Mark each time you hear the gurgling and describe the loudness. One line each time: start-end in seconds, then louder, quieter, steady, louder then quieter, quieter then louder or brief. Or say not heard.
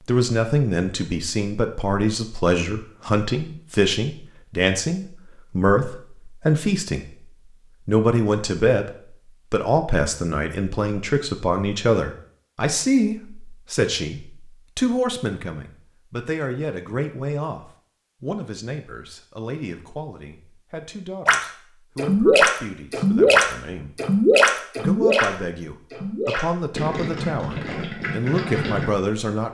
21.2-28.9 quieter.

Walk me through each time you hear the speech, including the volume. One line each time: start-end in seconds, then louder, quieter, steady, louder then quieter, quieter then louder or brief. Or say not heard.
0.1-7.1 steady
7.8-29.4 quieter then louder.